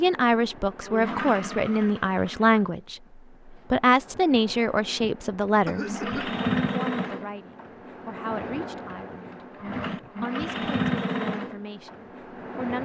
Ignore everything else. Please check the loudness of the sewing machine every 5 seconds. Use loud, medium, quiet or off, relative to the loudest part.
medium, loud, loud.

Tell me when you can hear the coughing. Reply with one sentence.
You can hear the coughing from 5.7 to 6.3 s.